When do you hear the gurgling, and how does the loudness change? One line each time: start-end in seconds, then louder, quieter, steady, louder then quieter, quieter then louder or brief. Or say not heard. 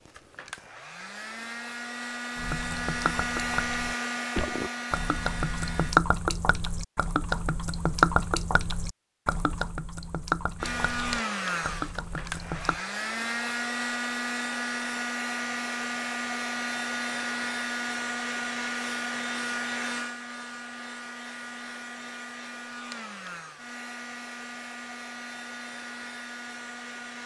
2.4-12.8 louder then quieter.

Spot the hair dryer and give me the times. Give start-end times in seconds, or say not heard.
0.0-6.0, 10.6-27.2.